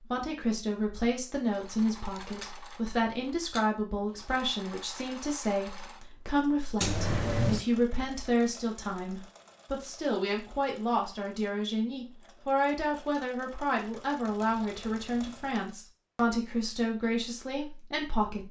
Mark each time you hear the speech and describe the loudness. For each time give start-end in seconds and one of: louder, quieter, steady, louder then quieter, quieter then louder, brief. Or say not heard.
0.0-18.4 steady.